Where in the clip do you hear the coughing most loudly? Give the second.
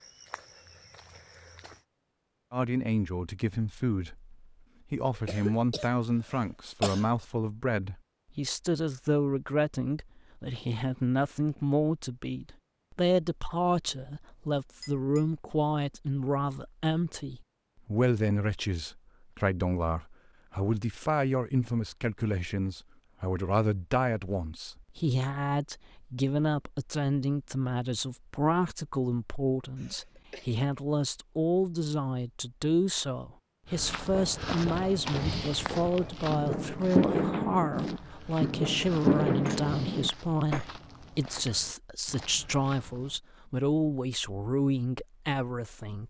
7 s.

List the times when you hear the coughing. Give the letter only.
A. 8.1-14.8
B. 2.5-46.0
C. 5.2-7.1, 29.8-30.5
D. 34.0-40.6
C.